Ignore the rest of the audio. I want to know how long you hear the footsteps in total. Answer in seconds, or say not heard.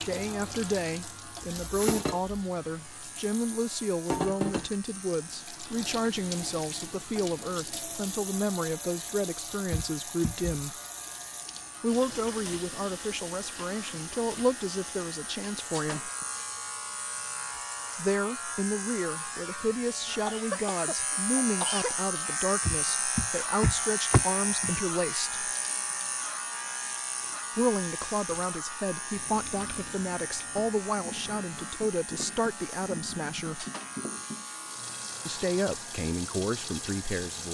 not heard.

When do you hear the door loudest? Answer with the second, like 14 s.
24 s.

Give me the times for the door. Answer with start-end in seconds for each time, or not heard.
9.7-10.8, 22.6-24.8.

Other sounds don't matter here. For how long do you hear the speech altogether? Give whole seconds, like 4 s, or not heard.
31 s.